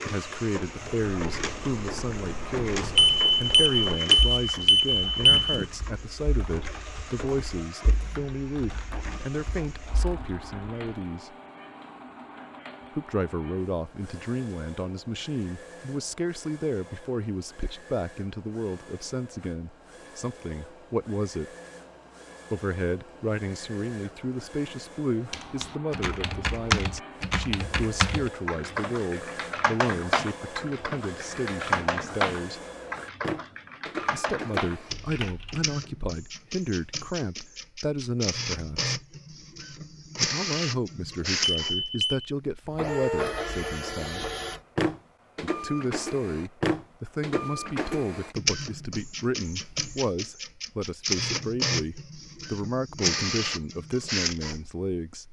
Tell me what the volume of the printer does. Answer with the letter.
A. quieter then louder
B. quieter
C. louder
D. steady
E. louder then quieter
A.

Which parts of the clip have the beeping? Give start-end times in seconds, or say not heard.
3.0-5.6, 41.5-42.3.